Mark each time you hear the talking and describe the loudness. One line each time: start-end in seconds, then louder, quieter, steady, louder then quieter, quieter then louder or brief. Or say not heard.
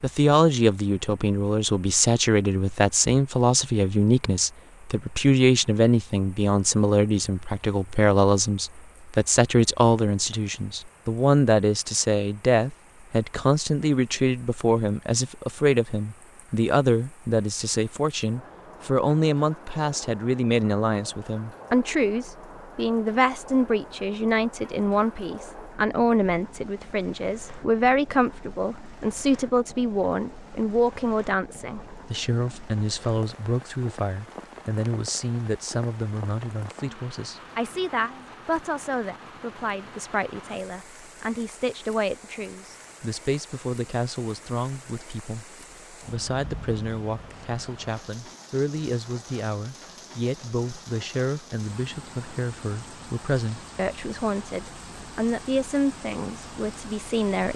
0.0-57.5 quieter.